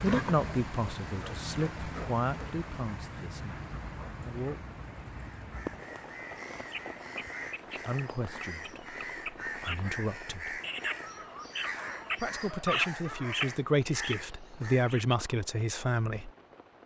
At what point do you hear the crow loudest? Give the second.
13 s.